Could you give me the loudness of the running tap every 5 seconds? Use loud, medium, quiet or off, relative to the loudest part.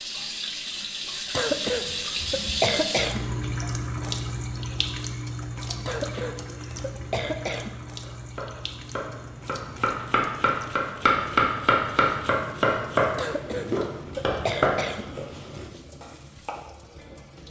loud, medium, quiet, quiet.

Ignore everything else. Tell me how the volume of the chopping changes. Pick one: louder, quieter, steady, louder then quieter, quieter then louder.
louder then quieter.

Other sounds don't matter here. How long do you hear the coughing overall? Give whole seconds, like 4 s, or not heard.
6 s.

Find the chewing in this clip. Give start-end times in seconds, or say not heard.
not heard.